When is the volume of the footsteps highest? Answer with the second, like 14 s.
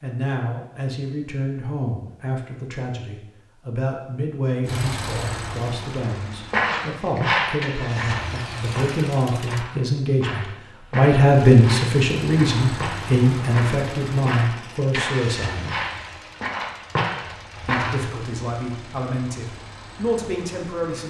7 s.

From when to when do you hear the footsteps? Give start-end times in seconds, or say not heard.
6.5-18.0.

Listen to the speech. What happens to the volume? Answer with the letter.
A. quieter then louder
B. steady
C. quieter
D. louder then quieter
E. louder
D.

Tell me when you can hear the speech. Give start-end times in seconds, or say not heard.
0.0-15.8, 17.6-21.0.